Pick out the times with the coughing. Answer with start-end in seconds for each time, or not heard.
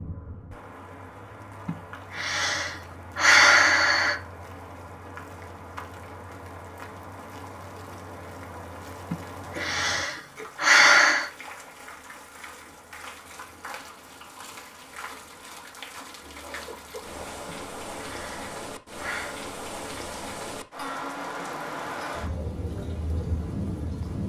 9.5-10.5, 16.2-17.1.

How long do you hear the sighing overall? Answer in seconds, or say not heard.
7 s.